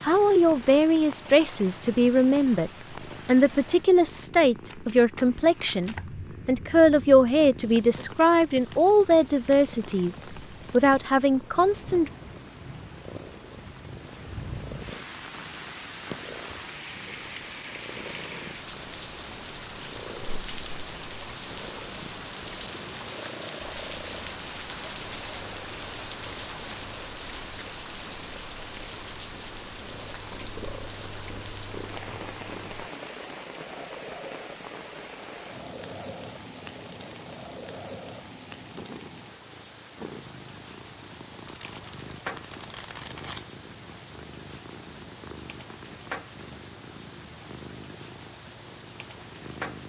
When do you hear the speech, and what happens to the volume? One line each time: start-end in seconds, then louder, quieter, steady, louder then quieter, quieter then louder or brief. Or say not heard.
0.0-12.1 steady.